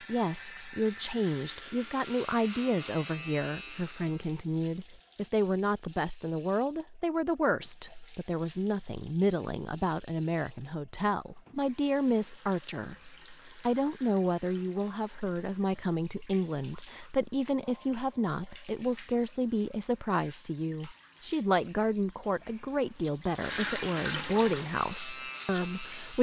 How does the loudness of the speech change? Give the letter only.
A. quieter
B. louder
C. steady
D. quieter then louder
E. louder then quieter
C.